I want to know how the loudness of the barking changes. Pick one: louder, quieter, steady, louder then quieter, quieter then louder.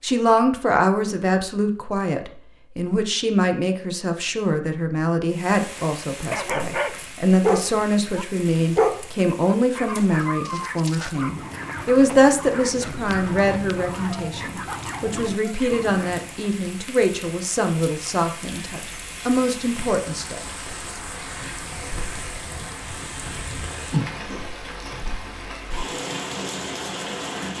quieter.